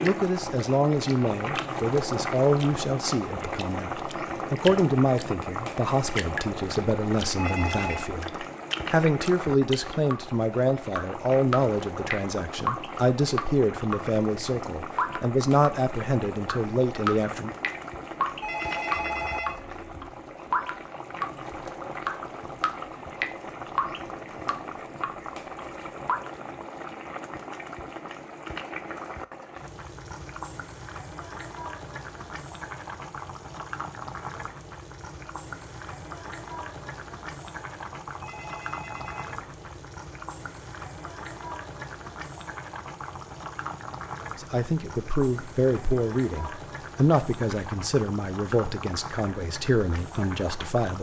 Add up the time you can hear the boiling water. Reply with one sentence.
The boiling water can be heard for 51 seconds in total.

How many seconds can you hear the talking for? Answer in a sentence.
You can hear the talking for 24 seconds altogether.